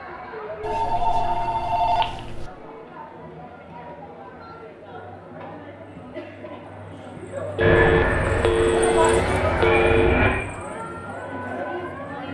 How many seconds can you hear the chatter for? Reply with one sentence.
You can hear the chatter for 12 seconds altogether.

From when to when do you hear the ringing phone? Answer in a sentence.
You can hear the ringing phone from 0.6 to 2.5 s and from 7.5 to 10.2 s.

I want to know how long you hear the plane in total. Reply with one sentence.
You can hear the plane for 3 seconds altogether.